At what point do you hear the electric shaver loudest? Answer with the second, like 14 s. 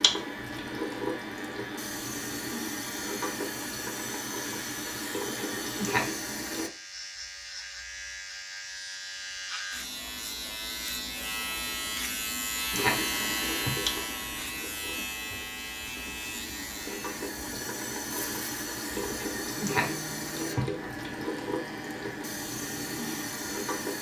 13 s.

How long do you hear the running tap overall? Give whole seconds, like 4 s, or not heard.
18 s.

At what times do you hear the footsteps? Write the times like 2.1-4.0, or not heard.
not heard.